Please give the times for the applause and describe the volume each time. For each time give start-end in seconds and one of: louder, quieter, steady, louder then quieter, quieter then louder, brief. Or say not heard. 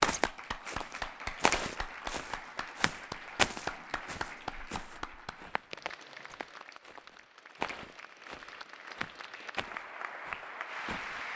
0.1-11.3 quieter then louder.